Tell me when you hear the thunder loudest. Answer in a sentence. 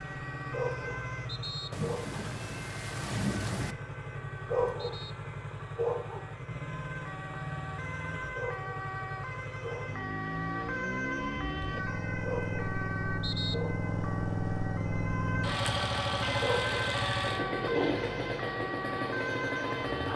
The volume of the thunder peaks at 3 seconds.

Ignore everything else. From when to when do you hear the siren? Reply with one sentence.
You can hear the siren from 0.0 to 20.1 s.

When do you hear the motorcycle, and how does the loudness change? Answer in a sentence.
The motorcycle can be heard from 0.0 to 20.1 s, getting louder.